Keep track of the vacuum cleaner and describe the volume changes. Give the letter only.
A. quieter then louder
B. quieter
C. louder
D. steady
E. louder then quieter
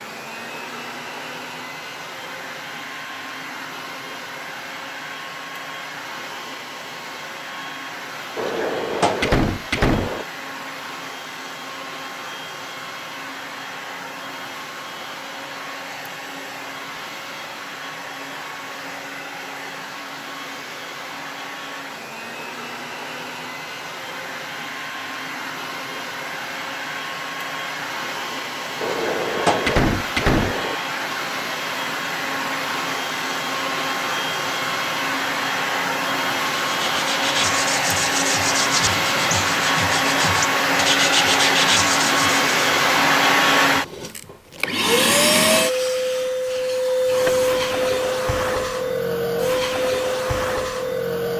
C.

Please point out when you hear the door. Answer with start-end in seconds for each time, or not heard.
8.3-10.2, 28.8-30.8.